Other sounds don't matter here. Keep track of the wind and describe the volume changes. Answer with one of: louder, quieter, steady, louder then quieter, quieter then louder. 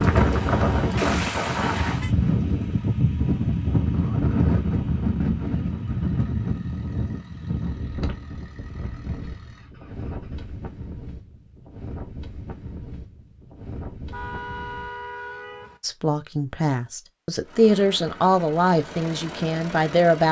quieter.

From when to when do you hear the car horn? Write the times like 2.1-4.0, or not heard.
0.9-2.1, 14.1-15.8.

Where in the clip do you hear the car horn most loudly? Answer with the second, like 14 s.
1 s.